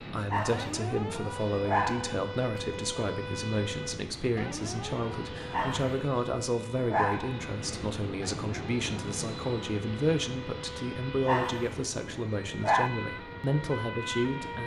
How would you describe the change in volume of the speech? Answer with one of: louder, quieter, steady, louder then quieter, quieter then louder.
steady.